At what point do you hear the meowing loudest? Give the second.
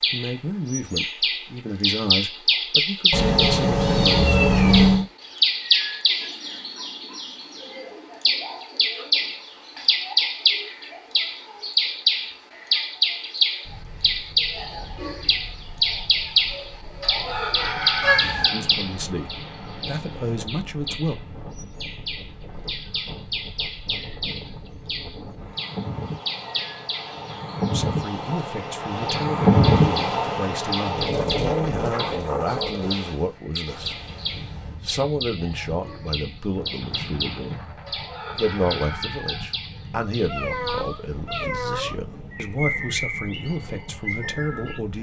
5 s.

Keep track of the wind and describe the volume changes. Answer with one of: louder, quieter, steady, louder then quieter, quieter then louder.
louder then quieter.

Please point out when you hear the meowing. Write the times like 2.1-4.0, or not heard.
3.1-5.0, 18.0-18.5, 40.2-42.0.